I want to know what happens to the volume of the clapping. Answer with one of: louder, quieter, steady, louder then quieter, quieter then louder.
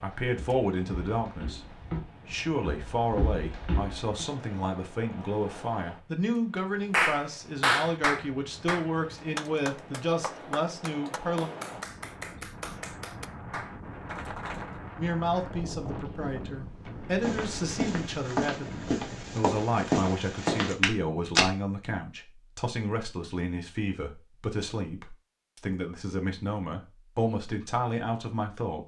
quieter.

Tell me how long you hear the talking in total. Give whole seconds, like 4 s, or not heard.
25 s.